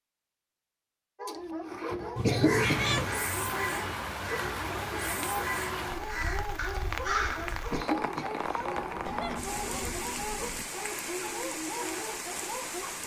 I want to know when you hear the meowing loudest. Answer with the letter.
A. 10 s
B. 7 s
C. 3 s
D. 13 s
C.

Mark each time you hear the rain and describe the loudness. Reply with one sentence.
The rain can be heard from 2.6 to 13.0 s, at a steady volume.